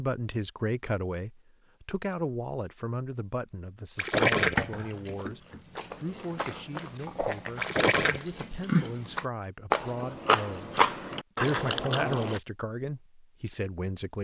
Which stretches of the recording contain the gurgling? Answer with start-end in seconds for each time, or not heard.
4.0-4.6, 7.6-8.2.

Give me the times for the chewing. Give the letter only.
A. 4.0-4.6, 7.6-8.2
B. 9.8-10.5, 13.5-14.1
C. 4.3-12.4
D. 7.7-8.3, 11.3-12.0
C.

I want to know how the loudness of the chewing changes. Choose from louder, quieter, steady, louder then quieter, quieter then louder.
louder.